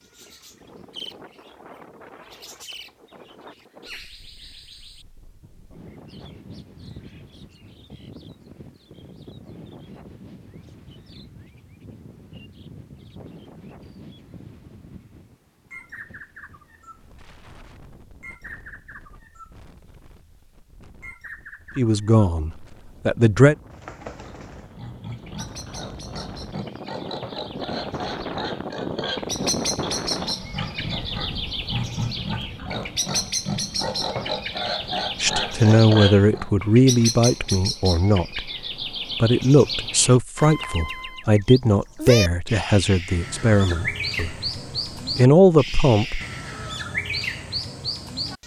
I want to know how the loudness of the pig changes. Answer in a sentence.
The loudness of the pig goes up.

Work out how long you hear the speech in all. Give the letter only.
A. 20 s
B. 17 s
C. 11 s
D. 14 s
C.